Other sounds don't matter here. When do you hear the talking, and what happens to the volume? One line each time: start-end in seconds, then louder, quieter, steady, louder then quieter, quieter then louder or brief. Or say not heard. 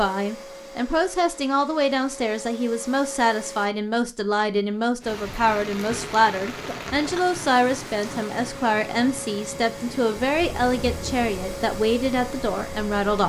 0.0-13.2 steady.